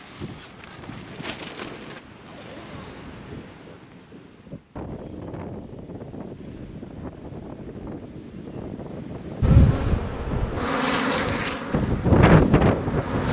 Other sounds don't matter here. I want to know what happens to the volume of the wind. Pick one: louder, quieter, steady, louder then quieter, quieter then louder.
louder.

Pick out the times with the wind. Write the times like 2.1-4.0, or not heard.
0.0-13.2.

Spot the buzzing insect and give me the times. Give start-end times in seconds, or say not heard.
9.4-13.2.